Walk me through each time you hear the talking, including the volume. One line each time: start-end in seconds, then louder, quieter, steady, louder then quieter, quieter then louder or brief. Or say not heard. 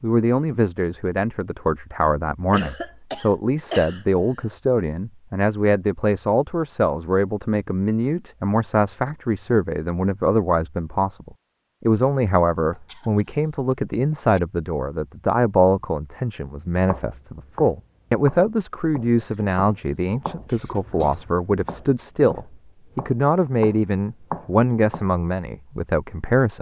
0.0-26.5 steady.